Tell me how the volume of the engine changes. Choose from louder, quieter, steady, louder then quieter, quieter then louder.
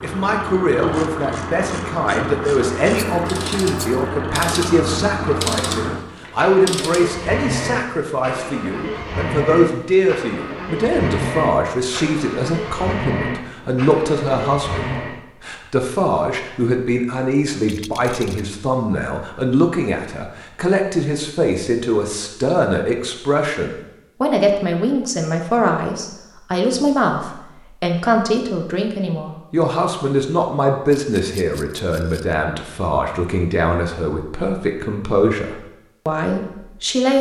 steady.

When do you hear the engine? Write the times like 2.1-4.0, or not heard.
0.0-15.2.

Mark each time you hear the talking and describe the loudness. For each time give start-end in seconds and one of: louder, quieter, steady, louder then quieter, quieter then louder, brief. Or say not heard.
0.0-37.1 steady.